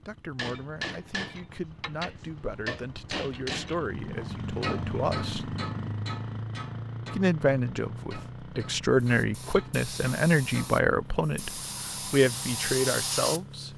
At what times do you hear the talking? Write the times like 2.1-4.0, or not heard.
0.1-5.5, 7.1-13.7.